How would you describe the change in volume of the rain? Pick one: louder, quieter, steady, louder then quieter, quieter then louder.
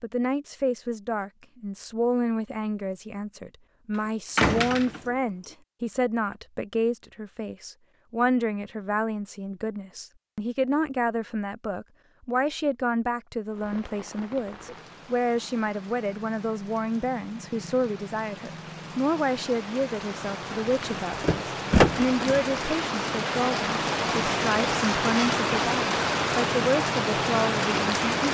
louder.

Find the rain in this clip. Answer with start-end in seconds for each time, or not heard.
13.4-28.2.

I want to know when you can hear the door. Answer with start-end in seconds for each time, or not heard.
4.3-5.0, 20.8-22.5.